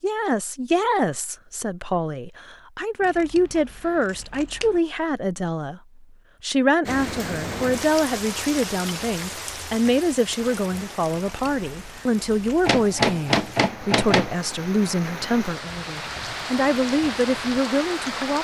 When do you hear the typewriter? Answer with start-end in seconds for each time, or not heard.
12.6-14.3.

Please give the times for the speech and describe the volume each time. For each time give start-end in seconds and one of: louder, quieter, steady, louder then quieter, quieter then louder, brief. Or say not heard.
0.0-18.3 steady.